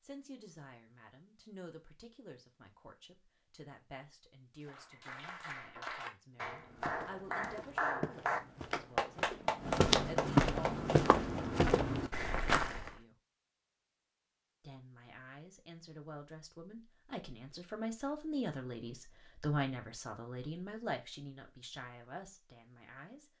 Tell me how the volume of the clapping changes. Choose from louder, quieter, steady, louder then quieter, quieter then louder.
louder.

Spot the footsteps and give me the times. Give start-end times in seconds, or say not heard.
6.4-12.9.